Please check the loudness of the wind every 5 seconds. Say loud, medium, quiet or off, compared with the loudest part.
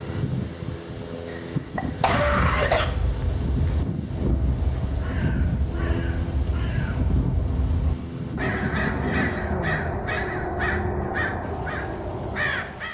loud, loud, quiet.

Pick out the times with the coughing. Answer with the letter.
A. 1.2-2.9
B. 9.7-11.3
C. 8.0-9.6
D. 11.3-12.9
A.